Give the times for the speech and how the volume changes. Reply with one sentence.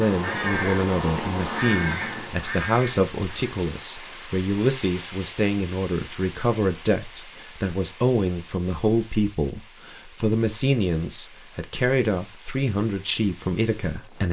You can hear the speech from 0.0 to 14.2 s, at a steady volume.